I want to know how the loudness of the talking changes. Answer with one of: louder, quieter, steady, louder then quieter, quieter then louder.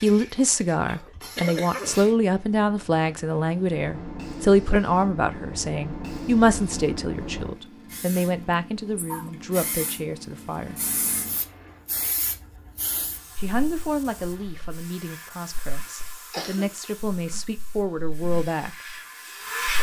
quieter.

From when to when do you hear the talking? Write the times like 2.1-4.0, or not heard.
0.0-10.8, 13.3-18.8.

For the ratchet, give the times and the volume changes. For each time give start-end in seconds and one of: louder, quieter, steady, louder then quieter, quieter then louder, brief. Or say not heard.
not heard.